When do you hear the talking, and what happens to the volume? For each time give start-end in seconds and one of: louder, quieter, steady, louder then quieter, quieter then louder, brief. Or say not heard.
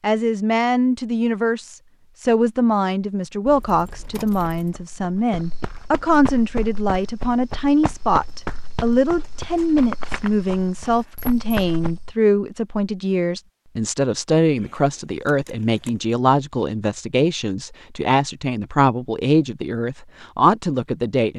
0.0-21.3 steady.